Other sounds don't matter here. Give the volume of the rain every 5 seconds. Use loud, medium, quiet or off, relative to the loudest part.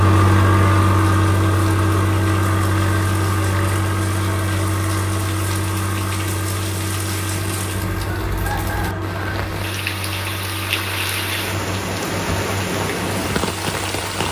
quiet, medium, loud.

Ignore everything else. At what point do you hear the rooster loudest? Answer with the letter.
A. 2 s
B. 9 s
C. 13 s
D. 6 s
B.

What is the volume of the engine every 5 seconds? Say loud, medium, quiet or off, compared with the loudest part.
loud, medium, quiet.